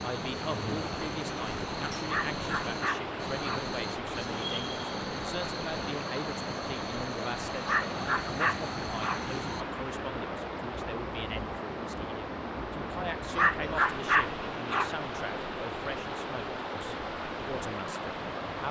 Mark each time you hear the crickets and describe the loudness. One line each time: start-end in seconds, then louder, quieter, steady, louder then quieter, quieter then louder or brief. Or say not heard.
0.0-9.7 steady.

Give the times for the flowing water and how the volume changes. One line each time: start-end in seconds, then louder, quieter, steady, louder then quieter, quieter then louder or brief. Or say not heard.
0.0-18.6 steady.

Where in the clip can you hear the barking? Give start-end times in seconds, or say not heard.
2.0-3.6, 7.6-9.2, 13.3-14.9.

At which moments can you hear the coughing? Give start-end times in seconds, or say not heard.
not heard.